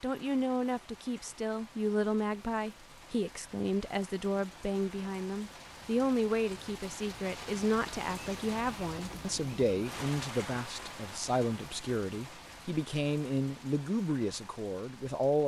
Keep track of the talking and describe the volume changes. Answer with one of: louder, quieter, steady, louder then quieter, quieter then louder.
steady.